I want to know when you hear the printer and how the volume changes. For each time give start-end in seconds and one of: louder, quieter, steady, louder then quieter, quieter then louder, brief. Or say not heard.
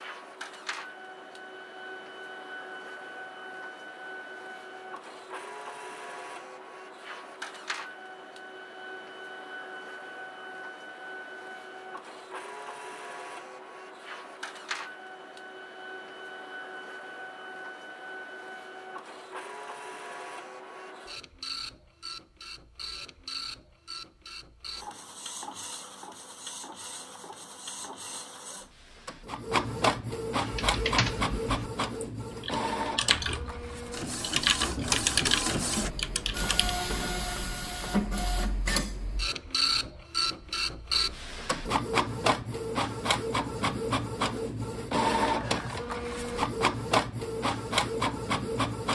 0.0-48.9 louder.